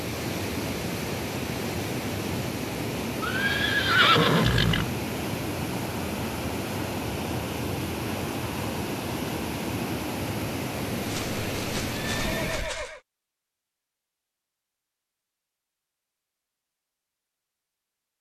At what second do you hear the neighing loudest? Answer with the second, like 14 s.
4 s.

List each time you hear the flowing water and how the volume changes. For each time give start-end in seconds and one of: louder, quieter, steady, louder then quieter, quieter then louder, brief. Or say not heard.
0.0-12.8 steady.